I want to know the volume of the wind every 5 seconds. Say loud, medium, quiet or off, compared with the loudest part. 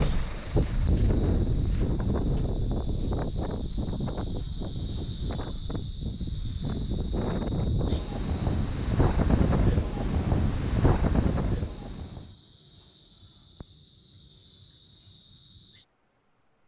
loud, loud, loud, off.